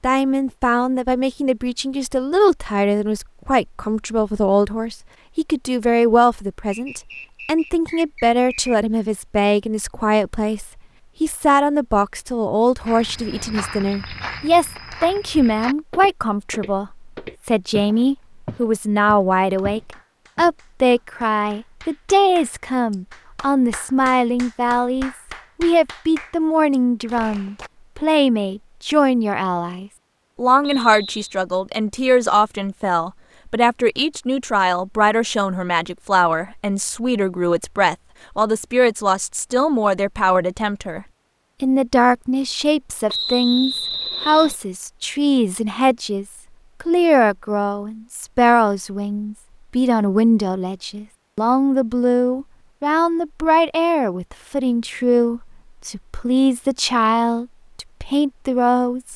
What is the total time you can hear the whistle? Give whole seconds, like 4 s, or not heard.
4 s.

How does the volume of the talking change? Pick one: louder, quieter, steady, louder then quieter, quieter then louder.
steady.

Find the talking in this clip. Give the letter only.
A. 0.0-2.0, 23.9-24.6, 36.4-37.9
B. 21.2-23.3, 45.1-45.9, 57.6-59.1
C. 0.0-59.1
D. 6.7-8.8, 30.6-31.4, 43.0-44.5
C.